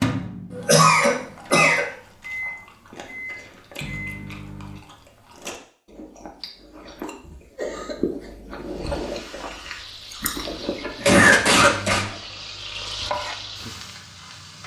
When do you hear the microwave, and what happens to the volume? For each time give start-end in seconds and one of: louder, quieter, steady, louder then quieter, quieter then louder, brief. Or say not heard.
0.0-4.8 louder then quieter.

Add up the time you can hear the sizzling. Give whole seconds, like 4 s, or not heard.
6 s.